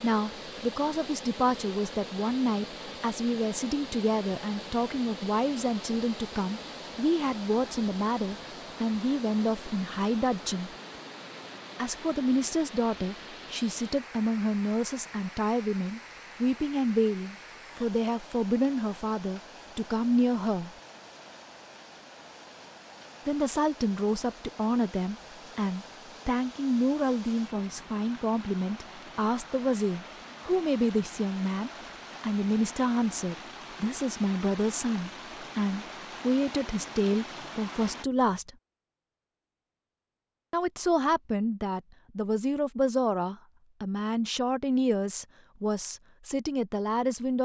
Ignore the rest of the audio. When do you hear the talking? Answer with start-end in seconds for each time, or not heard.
0.0-10.7, 11.8-20.7, 23.2-38.5, 40.5-47.4.